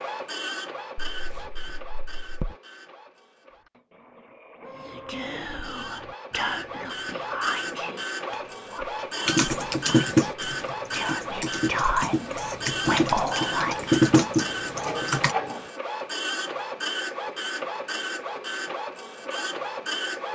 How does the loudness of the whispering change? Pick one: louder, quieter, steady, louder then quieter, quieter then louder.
quieter then louder.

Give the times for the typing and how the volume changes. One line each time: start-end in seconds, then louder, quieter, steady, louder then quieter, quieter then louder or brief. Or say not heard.
9.2-15.3 quieter then louder.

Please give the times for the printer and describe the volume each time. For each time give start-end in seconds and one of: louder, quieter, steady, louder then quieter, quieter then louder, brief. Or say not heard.
0.0-20.3 louder.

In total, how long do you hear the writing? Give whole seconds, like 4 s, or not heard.
3 s.